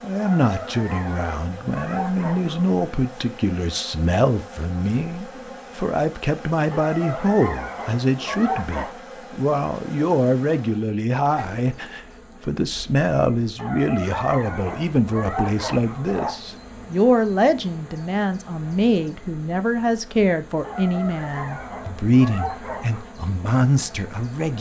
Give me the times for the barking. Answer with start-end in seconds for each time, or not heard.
0.1-2.8, 6.7-8.9, 13.6-16.4, 20.6-23.1.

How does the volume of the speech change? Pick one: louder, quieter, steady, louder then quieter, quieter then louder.
steady.